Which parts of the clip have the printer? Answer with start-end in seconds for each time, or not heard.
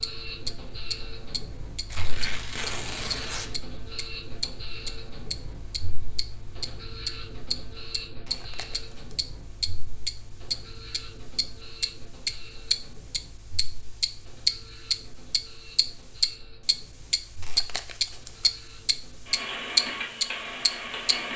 0.0-21.3.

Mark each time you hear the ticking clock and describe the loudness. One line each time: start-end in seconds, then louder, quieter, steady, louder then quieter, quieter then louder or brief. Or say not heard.
0.0-21.1 louder.